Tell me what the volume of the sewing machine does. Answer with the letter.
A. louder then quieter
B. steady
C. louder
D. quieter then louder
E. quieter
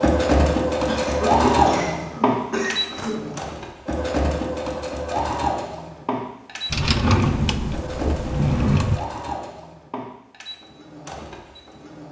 E.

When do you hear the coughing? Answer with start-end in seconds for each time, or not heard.
0.8-3.2.